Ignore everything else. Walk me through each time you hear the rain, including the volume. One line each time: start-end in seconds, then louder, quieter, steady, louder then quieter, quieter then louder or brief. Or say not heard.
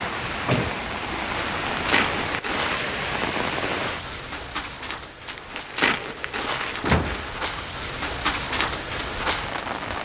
0.0-9.9 quieter then louder.